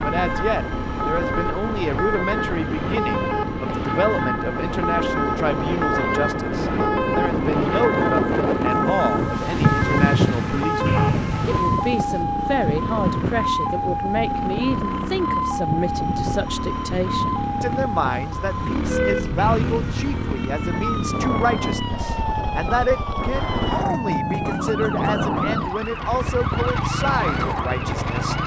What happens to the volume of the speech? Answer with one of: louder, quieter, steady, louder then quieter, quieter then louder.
steady.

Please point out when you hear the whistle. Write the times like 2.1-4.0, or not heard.
10.8-11.6, 19.4-20.1.